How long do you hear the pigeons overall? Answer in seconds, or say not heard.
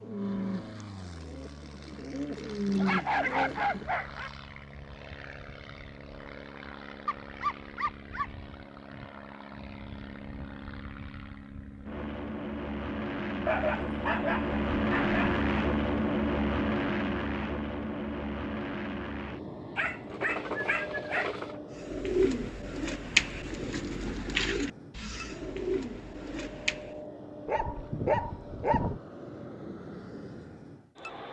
9 s.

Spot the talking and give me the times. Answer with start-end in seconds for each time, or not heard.
not heard.